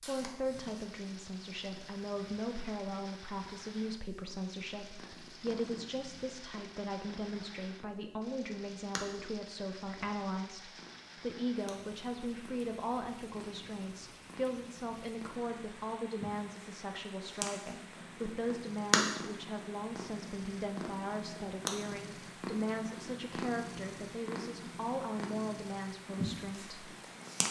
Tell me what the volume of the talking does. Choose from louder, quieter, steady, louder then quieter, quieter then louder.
steady.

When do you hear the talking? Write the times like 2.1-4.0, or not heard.
0.0-26.9.